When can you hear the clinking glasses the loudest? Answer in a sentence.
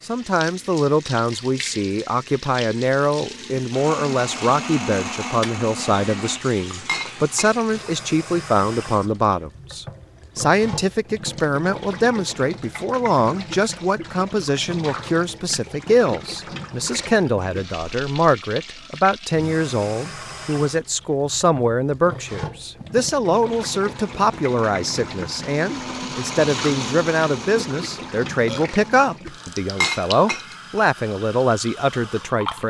The volume of the clinking glasses peaks at 30 seconds.